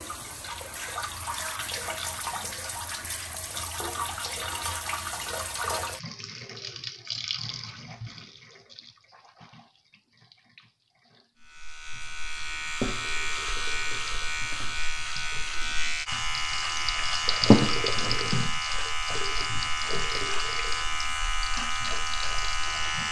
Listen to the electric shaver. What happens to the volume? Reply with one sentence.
The volume of the electric shaver stays about the same.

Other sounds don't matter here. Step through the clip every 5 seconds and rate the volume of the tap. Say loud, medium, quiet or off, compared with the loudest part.
medium, medium, quiet, loud, medium.